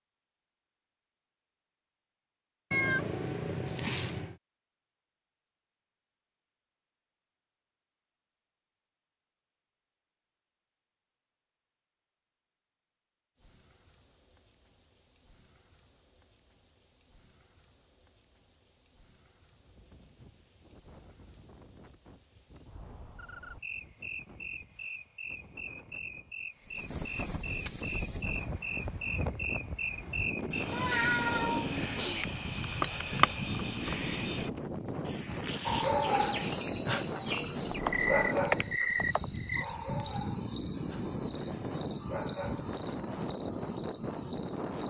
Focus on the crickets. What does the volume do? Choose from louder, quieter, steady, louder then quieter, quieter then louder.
louder.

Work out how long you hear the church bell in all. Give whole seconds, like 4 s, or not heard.
not heard.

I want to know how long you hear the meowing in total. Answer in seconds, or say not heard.
3 s.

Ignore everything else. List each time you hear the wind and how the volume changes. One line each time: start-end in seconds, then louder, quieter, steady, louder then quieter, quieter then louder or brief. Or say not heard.
19.4-44.8 louder.